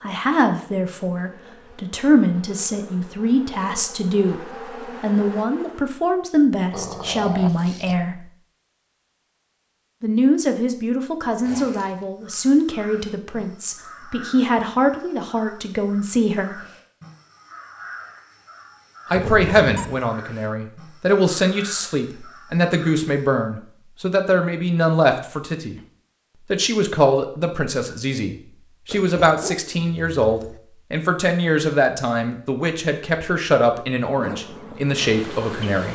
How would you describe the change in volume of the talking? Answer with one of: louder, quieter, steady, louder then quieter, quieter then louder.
steady.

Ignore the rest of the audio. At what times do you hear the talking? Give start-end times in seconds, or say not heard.
0.0-8.2, 10.0-16.6, 19.1-25.8, 26.5-35.8.